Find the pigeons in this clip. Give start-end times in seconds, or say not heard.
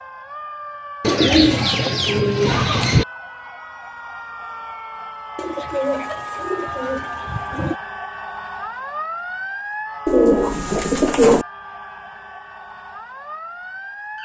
1.0-3.0, 5.3-7.8, 10.1-11.4.